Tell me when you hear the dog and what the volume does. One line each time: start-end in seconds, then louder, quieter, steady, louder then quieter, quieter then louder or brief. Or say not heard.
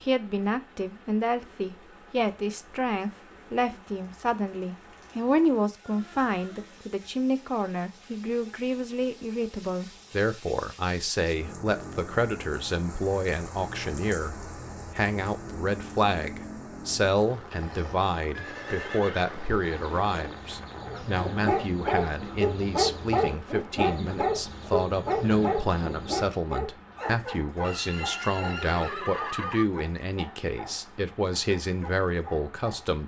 20.9-33.0 quieter.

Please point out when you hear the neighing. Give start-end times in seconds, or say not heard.
5.8-7.0, 18.4-20.4, 27.6-29.6.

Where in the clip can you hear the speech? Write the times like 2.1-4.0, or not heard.
0.0-33.0.